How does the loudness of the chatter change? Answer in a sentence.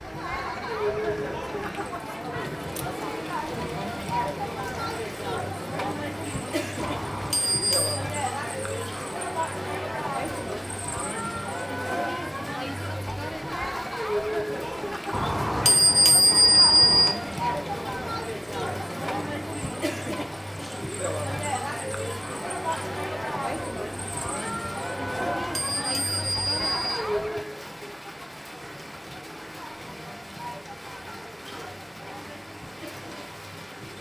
The volume of the chatter goes down.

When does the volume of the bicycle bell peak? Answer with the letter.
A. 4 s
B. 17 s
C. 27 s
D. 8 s
B.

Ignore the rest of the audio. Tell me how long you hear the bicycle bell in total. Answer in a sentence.
The bicycle bell can be heard for 5 seconds in total.